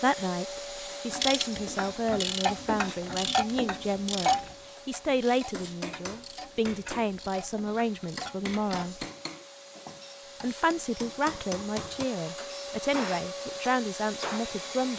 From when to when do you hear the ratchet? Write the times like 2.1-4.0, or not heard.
1.1-9.0.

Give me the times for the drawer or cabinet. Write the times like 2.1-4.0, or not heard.
not heard.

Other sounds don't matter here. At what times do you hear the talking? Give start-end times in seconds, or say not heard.
0.0-9.1, 10.4-14.9.